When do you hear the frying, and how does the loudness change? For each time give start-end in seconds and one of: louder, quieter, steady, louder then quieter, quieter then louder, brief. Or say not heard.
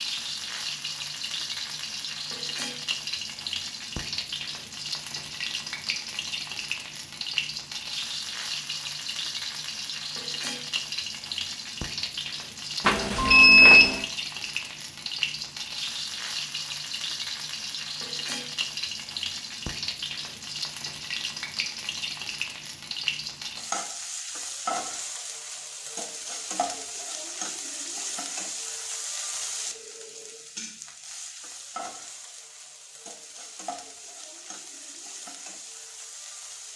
0.0-36.7 quieter.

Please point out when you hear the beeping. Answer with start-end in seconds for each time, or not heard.
12.8-14.0.